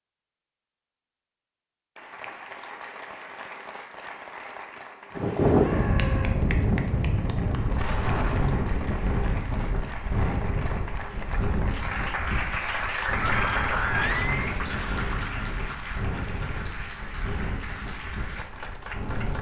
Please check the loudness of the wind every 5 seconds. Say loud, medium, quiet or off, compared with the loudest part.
off, loud, medium, medium.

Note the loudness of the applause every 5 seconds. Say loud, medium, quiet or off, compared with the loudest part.
medium, medium, loud, medium.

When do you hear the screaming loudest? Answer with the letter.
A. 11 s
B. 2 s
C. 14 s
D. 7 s
C.